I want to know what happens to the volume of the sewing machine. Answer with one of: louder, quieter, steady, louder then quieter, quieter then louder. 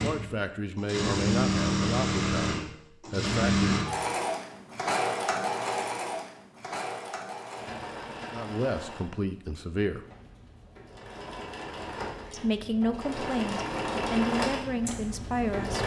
quieter then louder.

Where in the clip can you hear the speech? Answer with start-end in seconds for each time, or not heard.
0.0-3.7, 8.3-10.0, 12.3-15.8.